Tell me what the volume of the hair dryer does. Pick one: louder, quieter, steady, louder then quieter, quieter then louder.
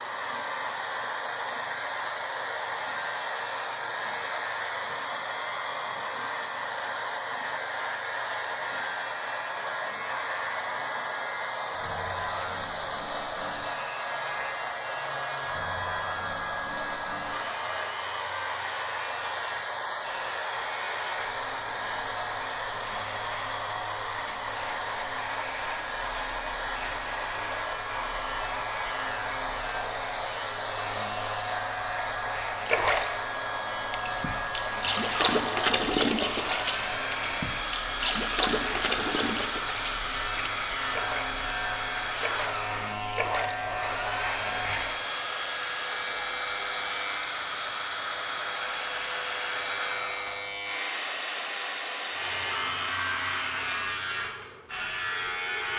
steady.